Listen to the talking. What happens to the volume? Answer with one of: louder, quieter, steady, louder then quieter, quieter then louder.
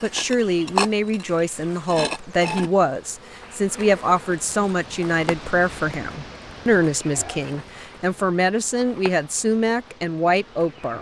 steady.